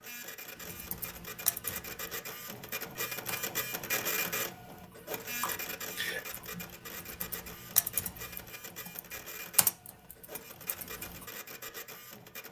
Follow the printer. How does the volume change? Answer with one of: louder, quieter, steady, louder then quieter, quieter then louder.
louder then quieter.